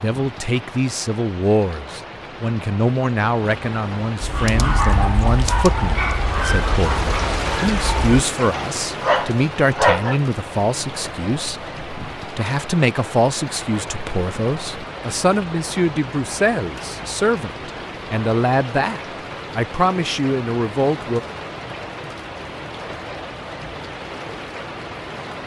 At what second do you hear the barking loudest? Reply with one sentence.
The volume of the barking peaks at 10 seconds.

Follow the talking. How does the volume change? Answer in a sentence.
The loudness of the talking stays about the same.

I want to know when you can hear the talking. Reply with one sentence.
The talking can be heard from 0.0 to 21.2 s.